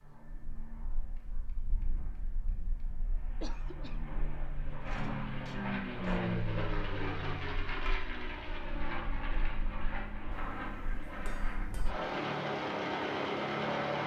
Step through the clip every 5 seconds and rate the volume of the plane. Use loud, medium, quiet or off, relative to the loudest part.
quiet, loud, loud.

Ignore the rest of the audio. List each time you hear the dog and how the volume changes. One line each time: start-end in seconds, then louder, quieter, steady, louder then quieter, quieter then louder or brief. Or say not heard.
not heard.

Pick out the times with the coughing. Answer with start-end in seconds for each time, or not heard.
3.4-4.2.